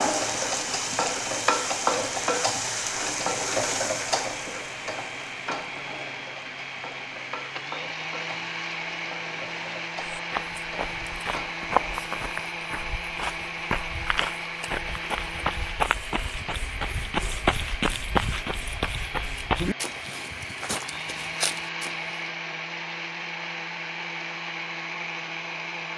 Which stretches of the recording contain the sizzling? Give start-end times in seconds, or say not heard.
0.0-12.5.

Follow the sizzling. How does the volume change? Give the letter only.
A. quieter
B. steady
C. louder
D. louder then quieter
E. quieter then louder
A.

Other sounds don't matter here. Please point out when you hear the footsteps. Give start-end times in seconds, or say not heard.
10.1-22.1.